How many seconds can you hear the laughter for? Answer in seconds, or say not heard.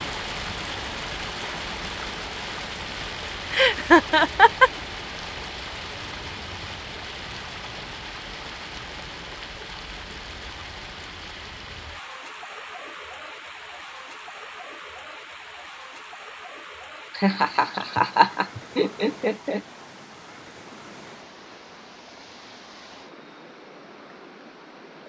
4 s.